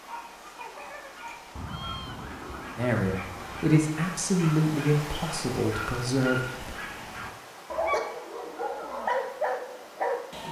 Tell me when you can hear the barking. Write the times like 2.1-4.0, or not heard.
0.0-10.4.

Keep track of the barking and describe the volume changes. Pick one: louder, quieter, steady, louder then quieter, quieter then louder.
louder.